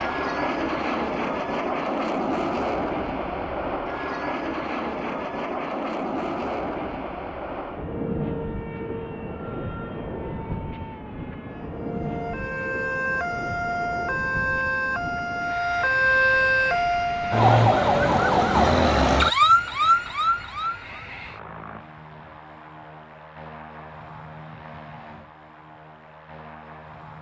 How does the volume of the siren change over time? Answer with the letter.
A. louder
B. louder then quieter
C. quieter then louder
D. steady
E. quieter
A.